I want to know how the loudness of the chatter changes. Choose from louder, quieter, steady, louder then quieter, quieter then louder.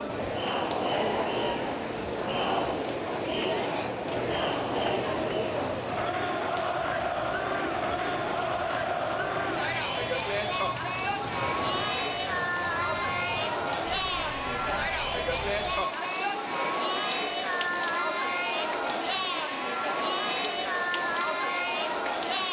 steady.